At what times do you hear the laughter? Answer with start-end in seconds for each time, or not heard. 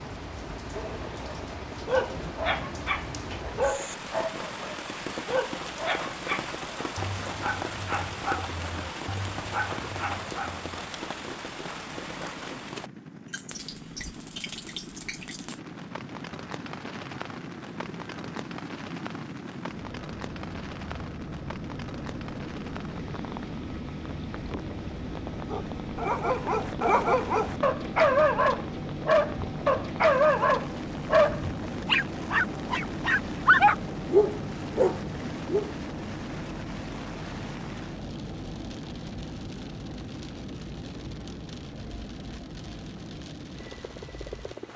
not heard.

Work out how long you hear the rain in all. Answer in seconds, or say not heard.
45 s.